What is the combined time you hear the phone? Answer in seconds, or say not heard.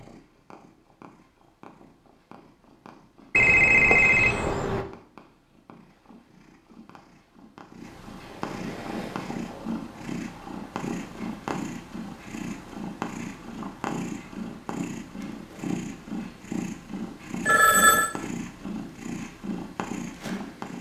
2 s.